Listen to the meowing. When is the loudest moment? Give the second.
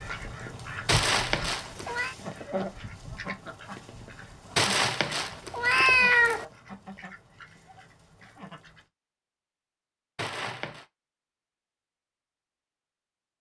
6 s.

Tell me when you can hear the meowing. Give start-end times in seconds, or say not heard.
0.8-2.1, 4.5-6.5, 10.2-10.8.